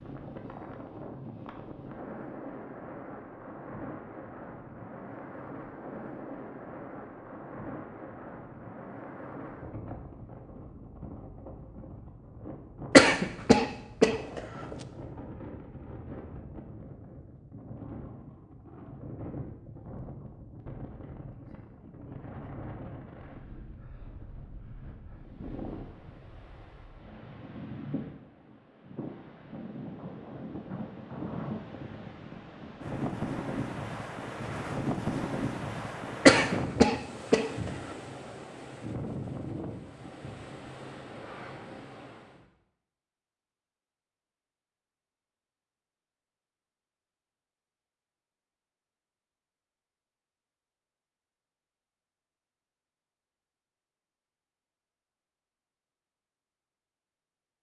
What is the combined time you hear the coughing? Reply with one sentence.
The coughing can be heard for 3 seconds in total.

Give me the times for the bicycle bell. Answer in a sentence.
The bicycle bell can't be heard in this clip.